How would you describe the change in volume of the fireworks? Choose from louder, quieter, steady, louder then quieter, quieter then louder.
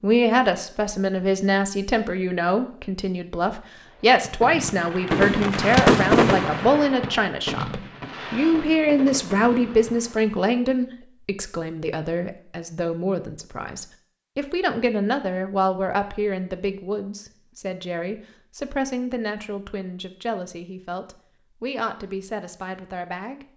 louder then quieter.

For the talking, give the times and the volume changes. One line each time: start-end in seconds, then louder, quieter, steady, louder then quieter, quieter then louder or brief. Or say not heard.
0.0-23.4 quieter.